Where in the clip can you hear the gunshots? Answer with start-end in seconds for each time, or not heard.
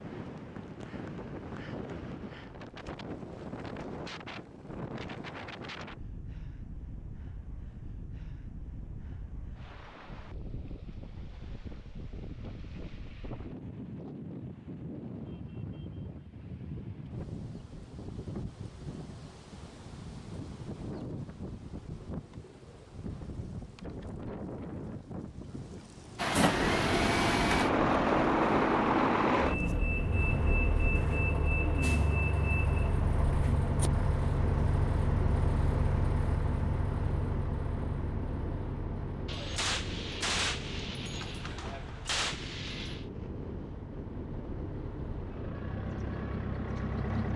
39.2-43.0.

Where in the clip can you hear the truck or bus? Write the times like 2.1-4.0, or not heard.
26.1-47.3.